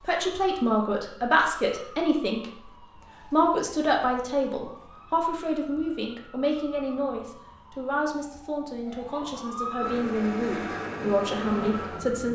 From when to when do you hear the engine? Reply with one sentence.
You can hear the engine from 9.8 to 12.2 s.